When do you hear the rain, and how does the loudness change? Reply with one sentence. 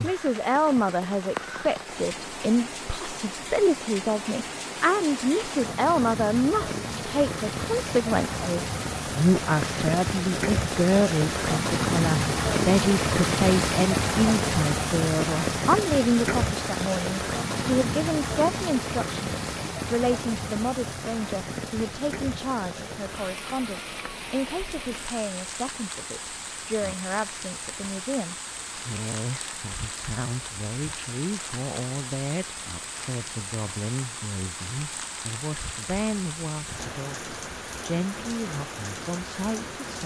You can hear the rain from 0.0 to 40.0 s, getting louder then quieter.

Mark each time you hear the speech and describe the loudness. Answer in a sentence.
The speech can be heard from 0.0 to 40.0 s, getting quieter.